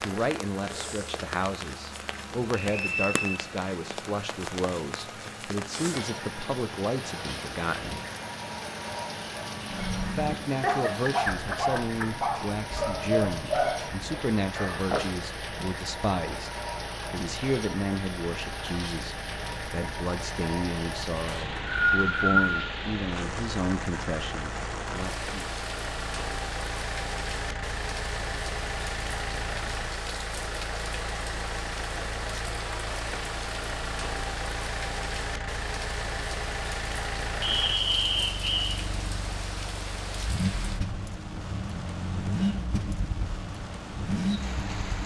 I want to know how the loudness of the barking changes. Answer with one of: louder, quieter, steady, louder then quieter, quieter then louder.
quieter.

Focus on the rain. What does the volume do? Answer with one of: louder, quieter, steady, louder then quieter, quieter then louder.
steady.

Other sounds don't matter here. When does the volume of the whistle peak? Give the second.
22 s.